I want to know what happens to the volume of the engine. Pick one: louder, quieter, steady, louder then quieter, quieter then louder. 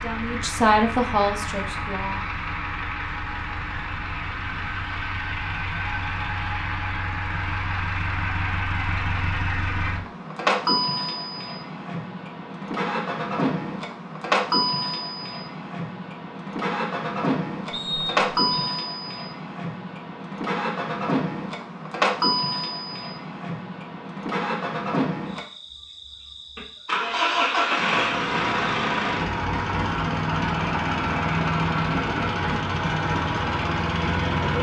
louder.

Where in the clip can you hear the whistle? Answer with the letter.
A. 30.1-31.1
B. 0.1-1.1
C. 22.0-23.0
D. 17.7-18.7
D.